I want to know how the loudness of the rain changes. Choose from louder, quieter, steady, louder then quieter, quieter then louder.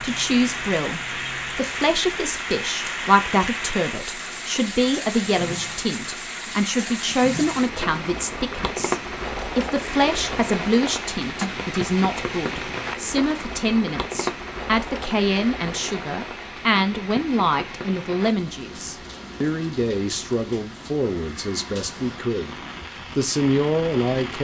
quieter.